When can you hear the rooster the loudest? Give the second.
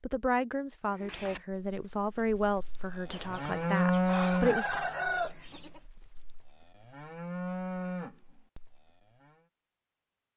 5 s.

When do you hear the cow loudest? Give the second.
4 s.